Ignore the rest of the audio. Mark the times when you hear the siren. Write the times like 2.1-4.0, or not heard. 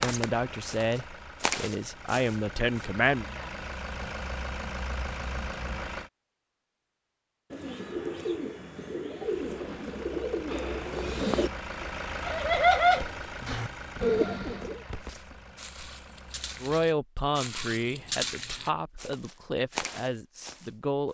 not heard.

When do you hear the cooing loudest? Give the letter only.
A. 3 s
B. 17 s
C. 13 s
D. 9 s
C.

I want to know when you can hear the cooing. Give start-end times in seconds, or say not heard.
7.5-14.8.